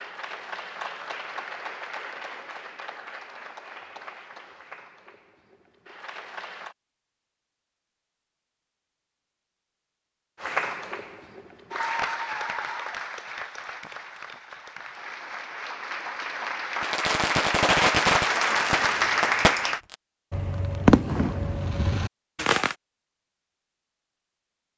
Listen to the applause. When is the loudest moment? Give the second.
19 s.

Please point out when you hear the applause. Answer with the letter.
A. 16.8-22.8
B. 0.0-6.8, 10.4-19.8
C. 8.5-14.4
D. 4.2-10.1
B.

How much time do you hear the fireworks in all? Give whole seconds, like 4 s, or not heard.
6 s.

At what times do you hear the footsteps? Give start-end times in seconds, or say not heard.
not heard.